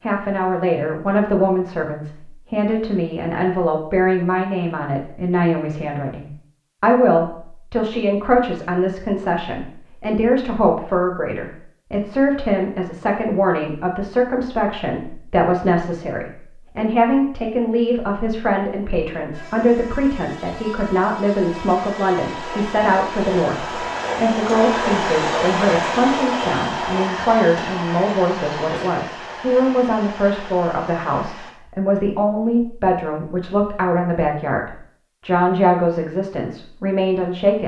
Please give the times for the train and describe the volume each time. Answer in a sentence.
You can hear the train from 19.3 to 31.6 s, getting louder then quieter.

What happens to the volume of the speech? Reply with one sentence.
The loudness of the speech stays about the same.